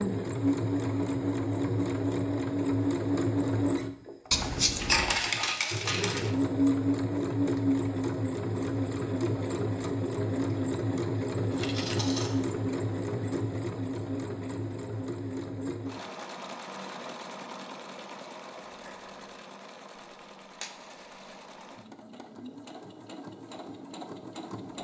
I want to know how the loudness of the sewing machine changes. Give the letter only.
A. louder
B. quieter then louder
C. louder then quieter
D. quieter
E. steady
D.